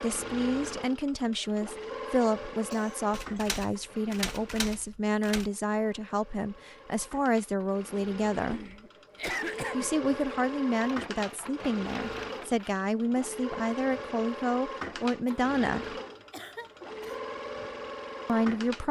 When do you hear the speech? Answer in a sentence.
The speech can be heard from 0.0 to 8.7 s, from 9.7 to 15.9 s and from 18.2 to 18.8 s.